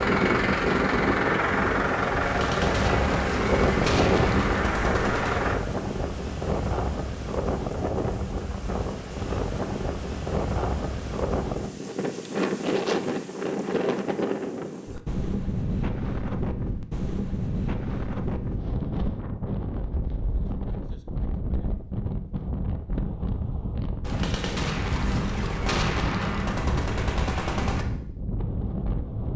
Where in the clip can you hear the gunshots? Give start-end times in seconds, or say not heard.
2.2-5.4, 24.0-27.9.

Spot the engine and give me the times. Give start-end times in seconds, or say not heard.
0.0-5.6.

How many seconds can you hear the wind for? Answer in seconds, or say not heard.
29 s.